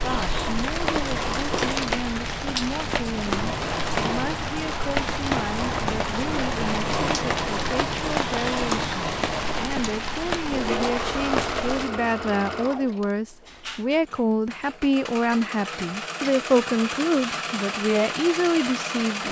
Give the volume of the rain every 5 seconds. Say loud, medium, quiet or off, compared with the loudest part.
loud, loud, loud, off.